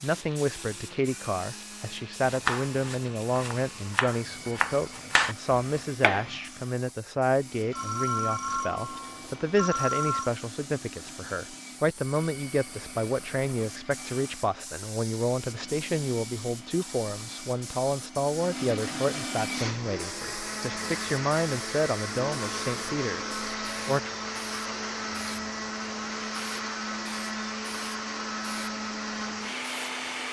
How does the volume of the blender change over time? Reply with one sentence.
The loudness of the blender goes up.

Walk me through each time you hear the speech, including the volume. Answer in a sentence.
You can hear the speech from 0.0 to 24.1 s, at a steady volume.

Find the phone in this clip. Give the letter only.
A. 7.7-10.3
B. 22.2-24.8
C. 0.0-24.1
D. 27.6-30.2
A.